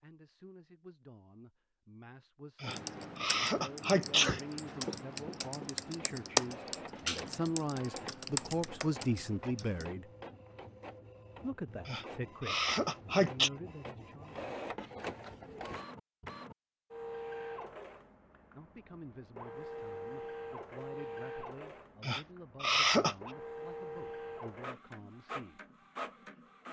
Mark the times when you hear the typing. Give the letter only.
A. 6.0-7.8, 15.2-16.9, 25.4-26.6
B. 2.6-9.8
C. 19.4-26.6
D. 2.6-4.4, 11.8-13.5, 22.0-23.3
B.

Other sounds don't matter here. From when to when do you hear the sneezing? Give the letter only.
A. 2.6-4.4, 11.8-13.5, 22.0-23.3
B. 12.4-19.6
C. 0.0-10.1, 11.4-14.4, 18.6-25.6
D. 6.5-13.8
A.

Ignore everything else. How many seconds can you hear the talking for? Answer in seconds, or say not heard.
20 s.